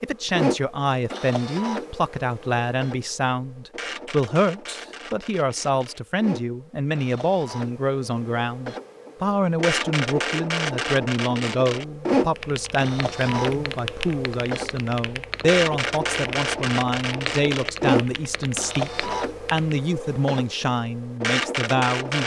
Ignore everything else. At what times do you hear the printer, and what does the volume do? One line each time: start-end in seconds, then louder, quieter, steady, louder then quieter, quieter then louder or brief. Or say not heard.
0.0-22.2 quieter then louder.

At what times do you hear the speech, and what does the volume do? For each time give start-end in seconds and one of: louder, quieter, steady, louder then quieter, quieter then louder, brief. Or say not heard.
0.0-22.2 steady.